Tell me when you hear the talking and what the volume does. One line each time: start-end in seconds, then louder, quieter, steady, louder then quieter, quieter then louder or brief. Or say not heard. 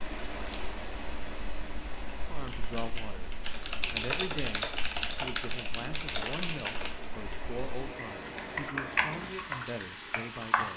2.3-10.7 steady.